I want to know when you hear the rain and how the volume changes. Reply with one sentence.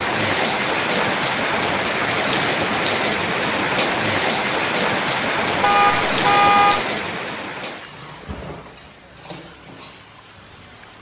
The rain can be heard from 0.0 to 10.9 s, getting quieter.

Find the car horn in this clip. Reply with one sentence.
The car horn can be heard from 5.6 to 6.8 s.